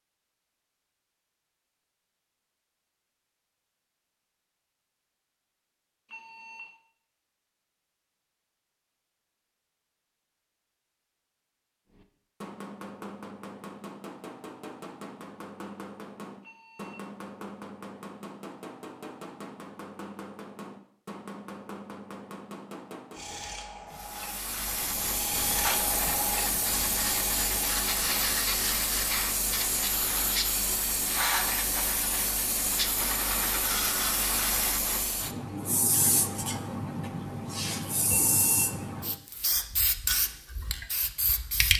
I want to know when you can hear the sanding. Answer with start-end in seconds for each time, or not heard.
23.1-28.2.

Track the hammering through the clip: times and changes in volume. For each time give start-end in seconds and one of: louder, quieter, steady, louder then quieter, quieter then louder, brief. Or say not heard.
11.9-23.4 steady.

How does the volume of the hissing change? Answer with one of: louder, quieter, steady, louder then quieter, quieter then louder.
steady.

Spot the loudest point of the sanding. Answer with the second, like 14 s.
26 s.